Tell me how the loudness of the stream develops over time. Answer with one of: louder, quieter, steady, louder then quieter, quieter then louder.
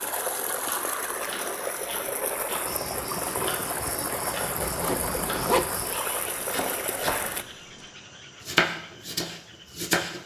steady.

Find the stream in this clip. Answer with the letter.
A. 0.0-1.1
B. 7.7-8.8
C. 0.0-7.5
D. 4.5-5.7
C.